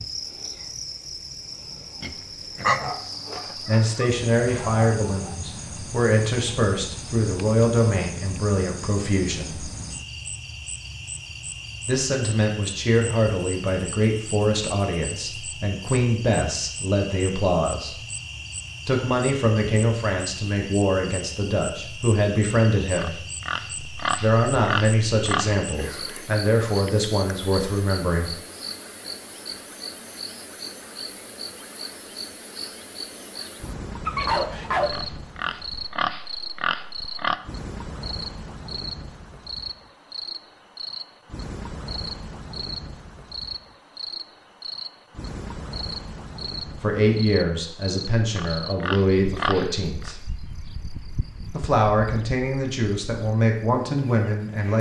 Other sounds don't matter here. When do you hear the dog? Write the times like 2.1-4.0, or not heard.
2.8-5.3, 34.0-35.0.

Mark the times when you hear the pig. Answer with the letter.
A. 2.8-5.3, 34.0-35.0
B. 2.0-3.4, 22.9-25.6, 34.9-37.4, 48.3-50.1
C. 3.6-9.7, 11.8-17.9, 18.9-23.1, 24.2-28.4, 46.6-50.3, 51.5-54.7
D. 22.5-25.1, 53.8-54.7
B.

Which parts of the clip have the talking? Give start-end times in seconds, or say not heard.
3.6-9.7, 11.8-17.9, 18.9-23.1, 24.2-28.4, 46.6-50.3, 51.5-54.7.